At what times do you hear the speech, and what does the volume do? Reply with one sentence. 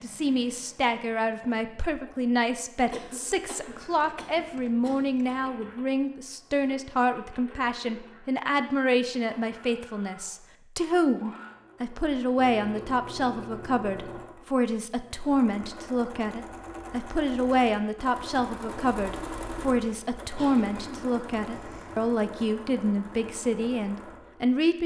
You can hear the speech from 0.0 to 24.8 s, at a steady volume.